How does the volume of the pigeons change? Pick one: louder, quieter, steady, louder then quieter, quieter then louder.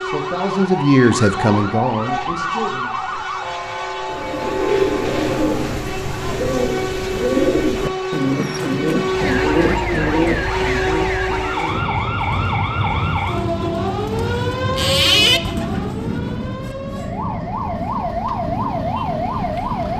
quieter then louder.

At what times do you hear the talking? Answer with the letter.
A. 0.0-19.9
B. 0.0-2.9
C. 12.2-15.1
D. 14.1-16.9
B.